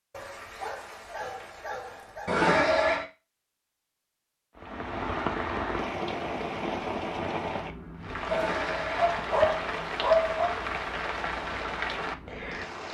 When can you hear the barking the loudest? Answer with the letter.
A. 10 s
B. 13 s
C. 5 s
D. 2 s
A.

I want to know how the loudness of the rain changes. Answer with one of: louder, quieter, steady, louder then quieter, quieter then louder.
steady.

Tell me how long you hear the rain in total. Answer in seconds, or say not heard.
8 s.